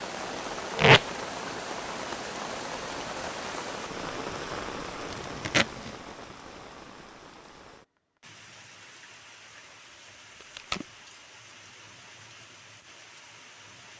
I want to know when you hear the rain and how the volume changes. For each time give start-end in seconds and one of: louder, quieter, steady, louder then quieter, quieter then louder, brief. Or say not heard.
0.0-13.9 quieter.